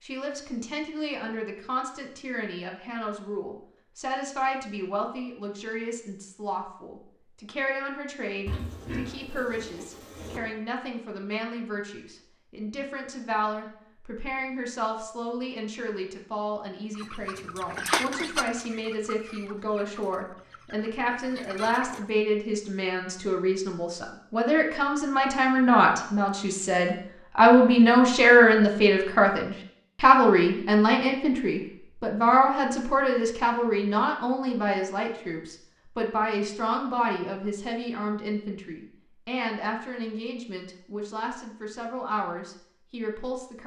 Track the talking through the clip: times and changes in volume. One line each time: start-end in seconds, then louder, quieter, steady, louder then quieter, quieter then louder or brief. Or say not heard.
0.0-43.6 louder then quieter.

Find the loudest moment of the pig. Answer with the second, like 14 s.
9 s.